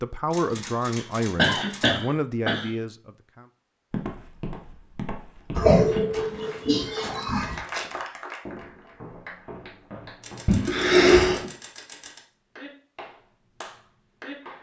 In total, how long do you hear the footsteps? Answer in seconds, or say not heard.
7 s.